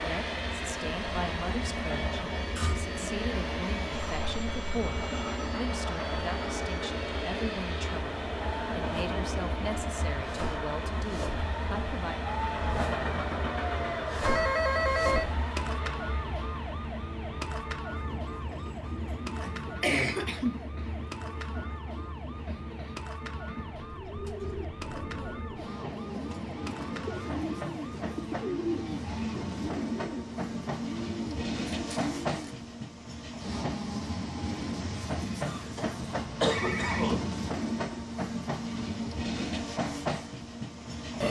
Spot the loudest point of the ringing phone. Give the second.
15 s.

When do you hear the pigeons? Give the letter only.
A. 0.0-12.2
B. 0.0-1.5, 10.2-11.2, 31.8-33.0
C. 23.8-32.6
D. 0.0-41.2
C.